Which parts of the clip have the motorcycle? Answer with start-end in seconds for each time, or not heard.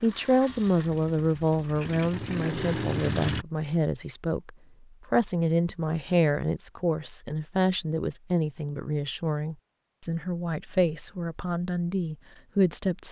0.0-3.5.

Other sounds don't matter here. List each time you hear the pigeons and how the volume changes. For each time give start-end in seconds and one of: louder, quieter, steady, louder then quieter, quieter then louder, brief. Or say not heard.
not heard.